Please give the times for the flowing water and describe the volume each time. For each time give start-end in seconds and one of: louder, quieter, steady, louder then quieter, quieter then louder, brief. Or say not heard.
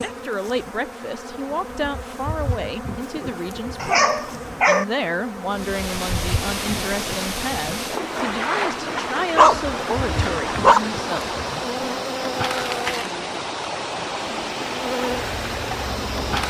5.5-16.4 steady.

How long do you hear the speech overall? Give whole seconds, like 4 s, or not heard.
11 s.